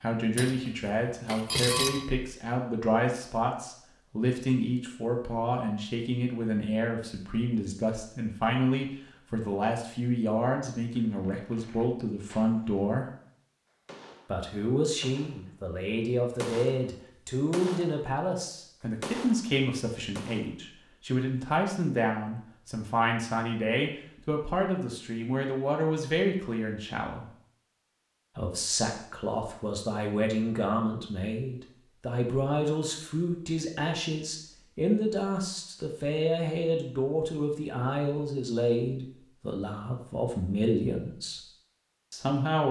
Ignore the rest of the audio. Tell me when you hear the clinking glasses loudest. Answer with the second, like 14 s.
2 s.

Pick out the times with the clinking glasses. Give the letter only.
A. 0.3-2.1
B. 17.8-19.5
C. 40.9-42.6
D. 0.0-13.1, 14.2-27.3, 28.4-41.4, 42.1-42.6
A.